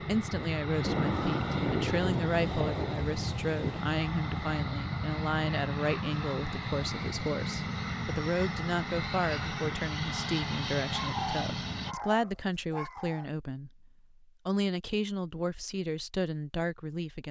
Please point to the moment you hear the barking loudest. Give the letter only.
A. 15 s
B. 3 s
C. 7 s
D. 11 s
D.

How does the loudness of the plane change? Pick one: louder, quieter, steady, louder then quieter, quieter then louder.
steady.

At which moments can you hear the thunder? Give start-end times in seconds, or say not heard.
0.8-3.9.